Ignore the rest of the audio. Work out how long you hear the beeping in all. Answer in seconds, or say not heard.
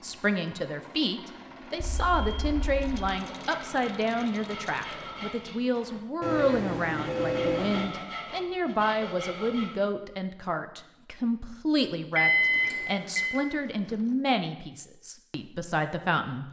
4 s.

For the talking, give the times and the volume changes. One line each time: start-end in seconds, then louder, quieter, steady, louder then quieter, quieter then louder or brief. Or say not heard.
0.0-16.4 steady.